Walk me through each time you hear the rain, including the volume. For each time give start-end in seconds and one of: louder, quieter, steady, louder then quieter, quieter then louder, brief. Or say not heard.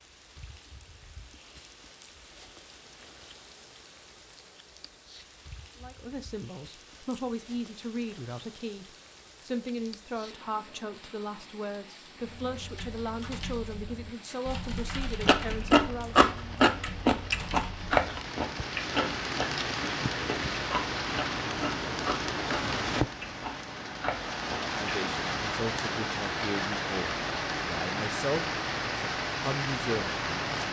0.0-30.6 louder.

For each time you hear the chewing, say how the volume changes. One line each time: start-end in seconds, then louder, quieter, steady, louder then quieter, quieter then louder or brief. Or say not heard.
15.2-24.9 quieter.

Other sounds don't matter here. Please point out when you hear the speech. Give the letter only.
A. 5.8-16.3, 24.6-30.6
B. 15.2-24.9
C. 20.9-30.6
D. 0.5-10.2
A.